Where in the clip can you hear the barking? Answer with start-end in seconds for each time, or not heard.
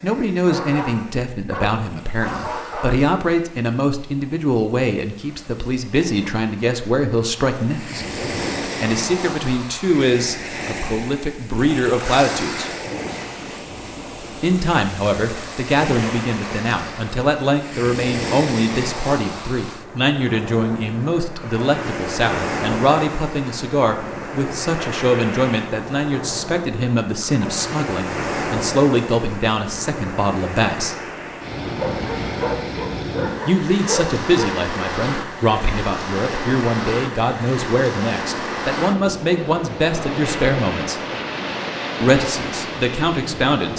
0.5-3.1, 31.7-34.6.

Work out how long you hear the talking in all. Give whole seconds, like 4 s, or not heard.
38 s.